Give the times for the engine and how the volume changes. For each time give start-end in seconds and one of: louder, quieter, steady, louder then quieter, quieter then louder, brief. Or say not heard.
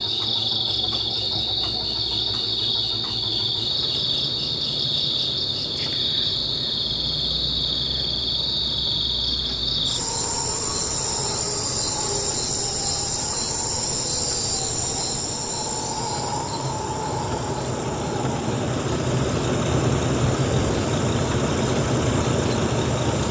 0.0-23.2 louder.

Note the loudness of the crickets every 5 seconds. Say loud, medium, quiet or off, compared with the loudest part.
loud, loud, loud, medium, quiet.